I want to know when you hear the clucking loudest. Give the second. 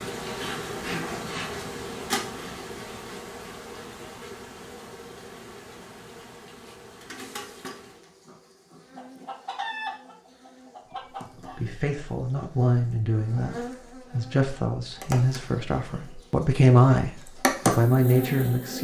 10 s.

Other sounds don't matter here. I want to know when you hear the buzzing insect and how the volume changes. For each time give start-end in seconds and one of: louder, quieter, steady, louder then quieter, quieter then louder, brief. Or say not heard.
0.0-18.8 quieter then louder.